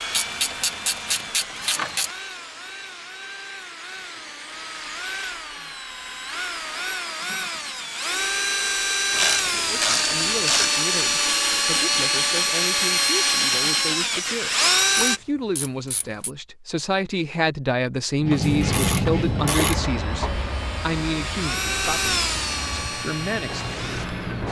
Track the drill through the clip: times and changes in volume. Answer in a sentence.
You can hear the drill from 0.0 to 15.2 s, getting louder; and from 18.2 to 24.4 s, getting louder then quieter.